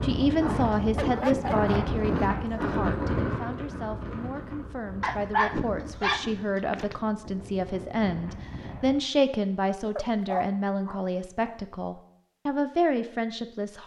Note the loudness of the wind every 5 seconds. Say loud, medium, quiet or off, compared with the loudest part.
loud, quiet, off.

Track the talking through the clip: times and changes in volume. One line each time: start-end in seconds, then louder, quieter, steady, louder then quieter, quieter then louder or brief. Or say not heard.
0.0-13.8 quieter then louder.